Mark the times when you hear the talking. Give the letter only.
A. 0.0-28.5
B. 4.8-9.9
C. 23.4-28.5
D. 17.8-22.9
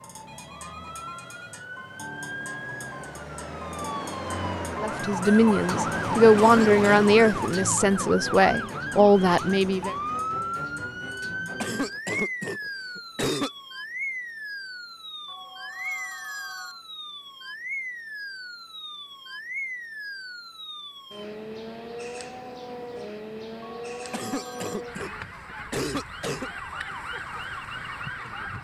B.